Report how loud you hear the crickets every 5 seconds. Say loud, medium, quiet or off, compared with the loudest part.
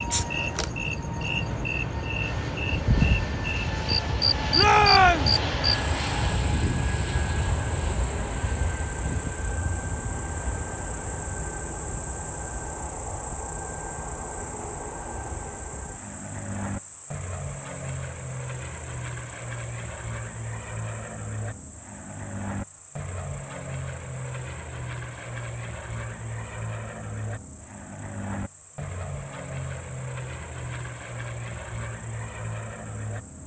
loud, medium, medium, quiet, quiet, quiet, quiet.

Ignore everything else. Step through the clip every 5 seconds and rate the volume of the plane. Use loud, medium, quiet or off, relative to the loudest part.
loud, loud, medium, medium, medium, medium, medium.